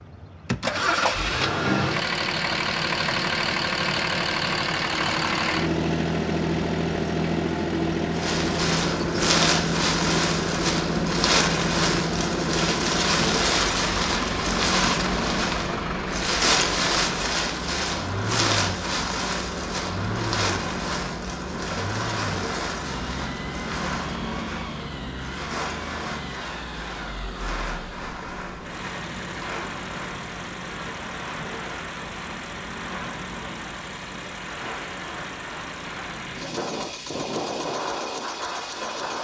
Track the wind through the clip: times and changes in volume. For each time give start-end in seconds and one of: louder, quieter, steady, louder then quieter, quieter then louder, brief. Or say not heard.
8.2-39.2 quieter.